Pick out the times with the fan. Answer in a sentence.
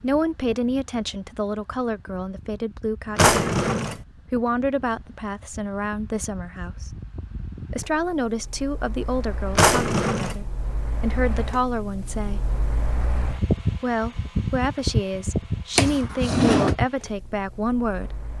You can hear the fan from 0.0 to 18.3 s.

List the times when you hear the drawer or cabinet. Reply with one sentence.
You can hear the drawer or cabinet from 3.1 to 4.0 s, from 9.6 to 10.3 s and from 15.8 to 16.8 s.